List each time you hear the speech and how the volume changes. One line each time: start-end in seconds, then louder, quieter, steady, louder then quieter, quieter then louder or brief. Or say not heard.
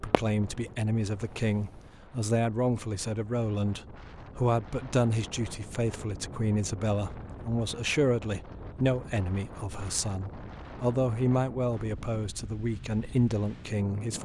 0.0-14.1 steady.